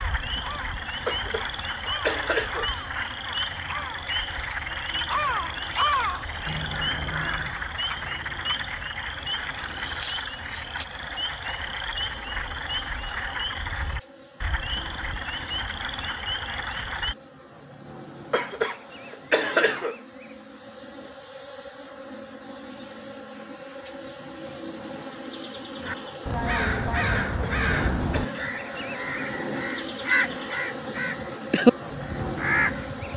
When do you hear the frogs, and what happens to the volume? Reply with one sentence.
The frogs can be heard from 0.0 to 17.1 s, at a steady volume.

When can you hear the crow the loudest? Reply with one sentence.
The volume of the crow peaks at 32 seconds.